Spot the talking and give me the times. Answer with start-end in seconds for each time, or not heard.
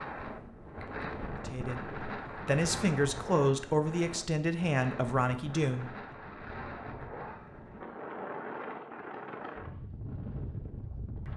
1.4-5.9.